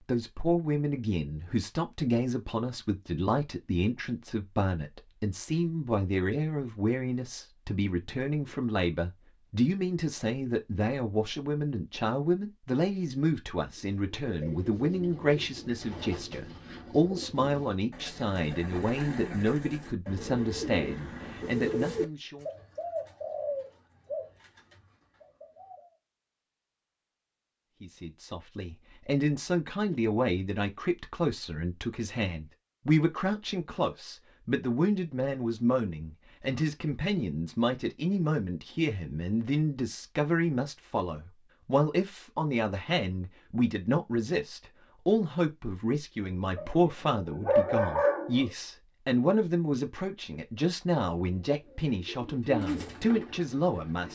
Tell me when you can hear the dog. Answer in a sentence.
The dog can be heard from 46.5 to 48.5 s.